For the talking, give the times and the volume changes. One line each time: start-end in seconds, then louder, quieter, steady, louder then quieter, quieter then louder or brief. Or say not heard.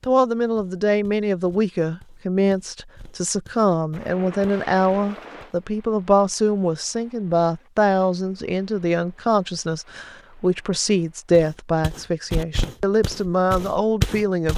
0.0-14.5 steady.